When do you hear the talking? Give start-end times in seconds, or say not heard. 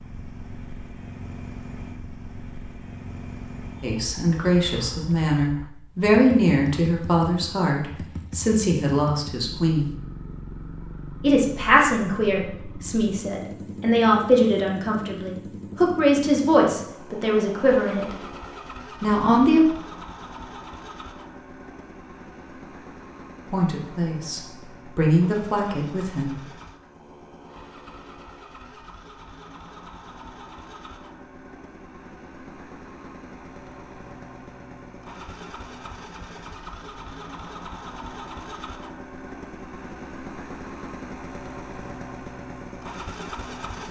3.8-10.0, 11.2-18.1, 19.0-19.7, 23.4-26.4.